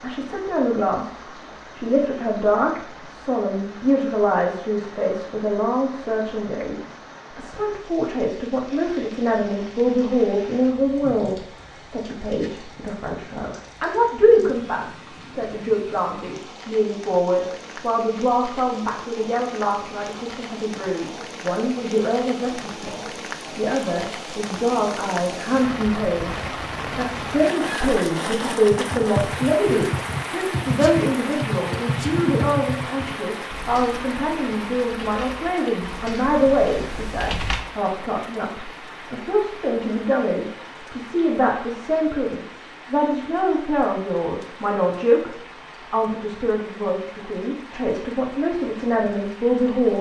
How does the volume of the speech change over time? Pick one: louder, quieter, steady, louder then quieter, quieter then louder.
steady.